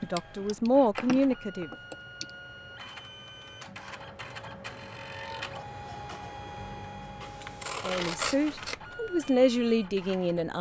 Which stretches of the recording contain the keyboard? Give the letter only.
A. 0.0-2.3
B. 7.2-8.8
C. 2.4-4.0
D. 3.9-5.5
A.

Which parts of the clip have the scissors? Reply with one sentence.
The scissors can be heard from 7.2 to 8.8 s.